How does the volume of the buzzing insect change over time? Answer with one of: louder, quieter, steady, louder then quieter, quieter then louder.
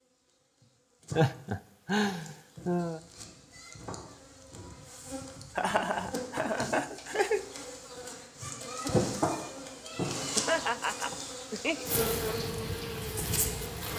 louder.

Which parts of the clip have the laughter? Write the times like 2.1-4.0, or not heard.
1.1-3.0, 5.5-7.5, 10.3-11.8.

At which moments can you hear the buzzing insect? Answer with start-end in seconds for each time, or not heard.
0.0-13.9.